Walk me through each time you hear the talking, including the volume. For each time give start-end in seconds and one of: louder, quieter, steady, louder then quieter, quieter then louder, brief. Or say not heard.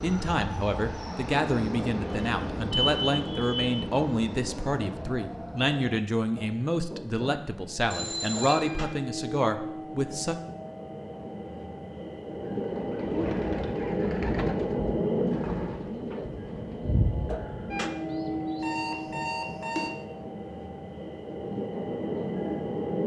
0.0-10.4 steady.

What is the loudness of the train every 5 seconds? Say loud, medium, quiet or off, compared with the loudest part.
loud, medium, loud, loud, loud.